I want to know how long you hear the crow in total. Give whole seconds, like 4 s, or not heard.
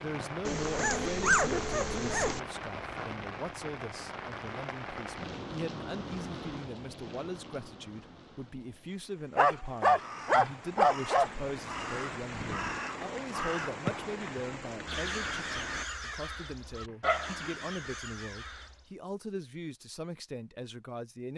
9 s.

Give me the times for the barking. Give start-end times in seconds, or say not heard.
0.5-2.4, 9.3-11.3, 17.0-17.5.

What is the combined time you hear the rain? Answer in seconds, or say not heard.
16 s.